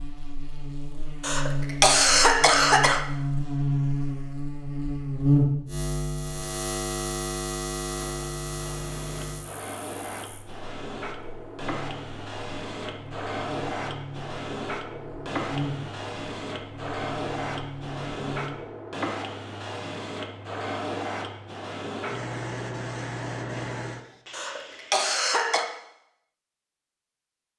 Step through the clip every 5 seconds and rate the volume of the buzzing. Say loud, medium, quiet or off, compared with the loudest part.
loud, loud, quiet, medium, off, off.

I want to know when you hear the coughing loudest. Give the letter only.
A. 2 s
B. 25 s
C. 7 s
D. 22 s
A.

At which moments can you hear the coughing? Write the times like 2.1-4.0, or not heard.
1.2-3.0, 24.3-25.6.